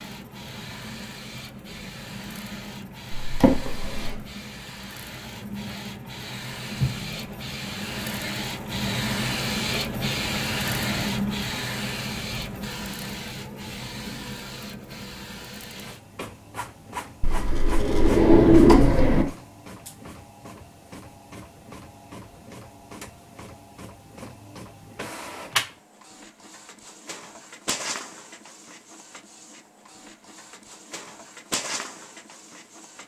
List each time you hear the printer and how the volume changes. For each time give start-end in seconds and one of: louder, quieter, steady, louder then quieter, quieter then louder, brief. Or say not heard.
0.0-33.0 louder then quieter.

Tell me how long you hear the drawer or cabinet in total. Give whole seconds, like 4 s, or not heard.
3 s.